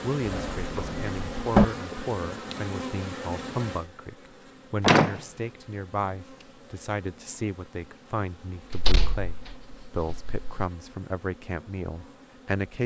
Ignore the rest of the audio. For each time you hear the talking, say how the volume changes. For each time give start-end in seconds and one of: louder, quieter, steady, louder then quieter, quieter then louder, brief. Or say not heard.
0.0-12.8 steady.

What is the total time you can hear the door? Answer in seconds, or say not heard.
4 s.